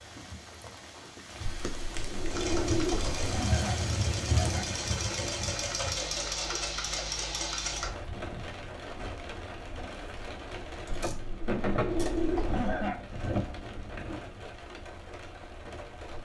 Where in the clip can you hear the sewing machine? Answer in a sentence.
You can hear the sewing machine from 2.3 to 7.9 s.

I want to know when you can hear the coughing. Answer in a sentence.
You can hear the coughing from 3.3 to 4.7 s and from 12.5 to 13.1 s.